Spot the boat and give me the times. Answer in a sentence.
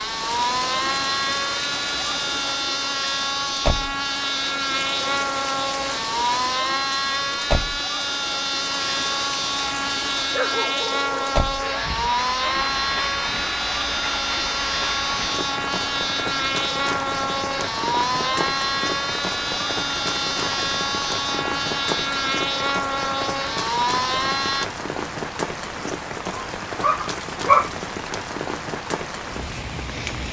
The boat can be heard from 0.0 to 24.7 s.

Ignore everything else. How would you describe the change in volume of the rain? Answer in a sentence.
The loudness of the rain stays about the same.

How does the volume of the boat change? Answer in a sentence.
The volume of the boat stays about the same.